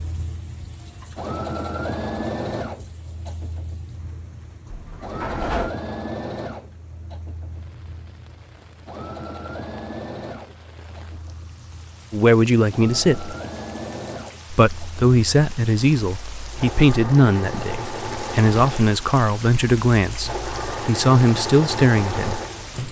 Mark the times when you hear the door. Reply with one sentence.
The door can be heard from 4.7 to 5.8 s.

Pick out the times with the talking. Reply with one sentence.
The talking can be heard from 12.1 to 13.3 s and from 14.5 to 22.8 s.